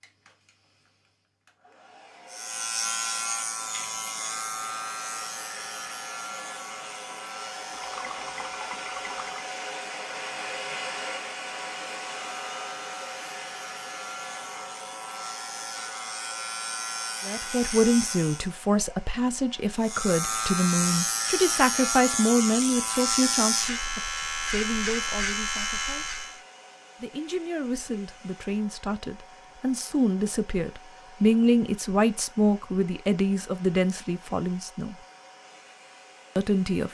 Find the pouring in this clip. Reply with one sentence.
The pouring can be heard from 7.7 to 9.4 s.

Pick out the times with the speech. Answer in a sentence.
The speech can be heard from 17.2 to 26.1 s, from 27.0 to 35.0 s and from 36.4 to 36.8 s.